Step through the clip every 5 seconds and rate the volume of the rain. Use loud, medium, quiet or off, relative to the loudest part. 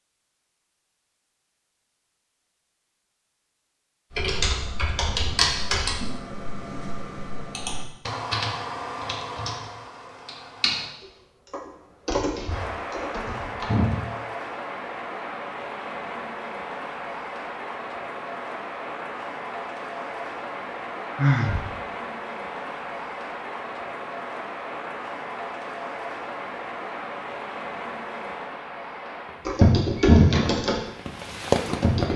off, off, medium, medium, medium, medium, loud.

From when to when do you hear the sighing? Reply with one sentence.
The sighing can be heard from 21.1 to 21.7 s.